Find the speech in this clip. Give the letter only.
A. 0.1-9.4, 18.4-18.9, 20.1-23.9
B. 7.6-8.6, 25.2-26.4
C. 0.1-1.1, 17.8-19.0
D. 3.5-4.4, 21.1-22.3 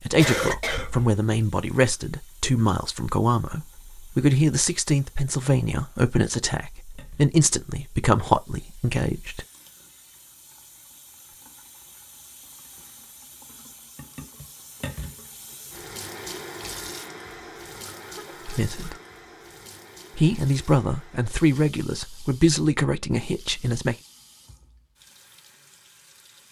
A.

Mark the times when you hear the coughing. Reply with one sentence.
You can hear the coughing from 0.1 to 1.1 s and from 17.8 to 19.0 s.